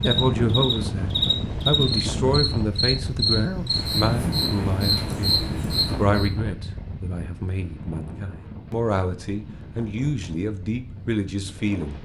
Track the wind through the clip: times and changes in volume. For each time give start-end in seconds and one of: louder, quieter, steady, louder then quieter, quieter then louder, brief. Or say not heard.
0.0-11.9 quieter.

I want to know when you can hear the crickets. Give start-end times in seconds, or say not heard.
0.0-6.3.